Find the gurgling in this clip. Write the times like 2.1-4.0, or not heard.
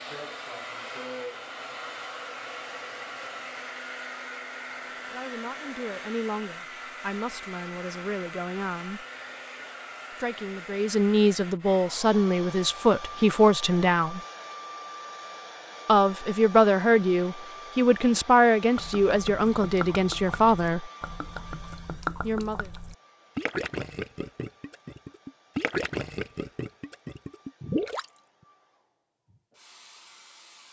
18.8-28.2.